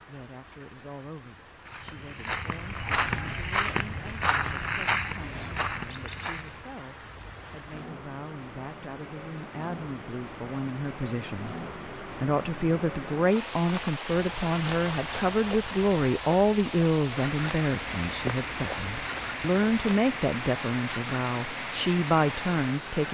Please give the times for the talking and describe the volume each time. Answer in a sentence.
The talking can be heard from 0.0 to 23.0 s, getting louder.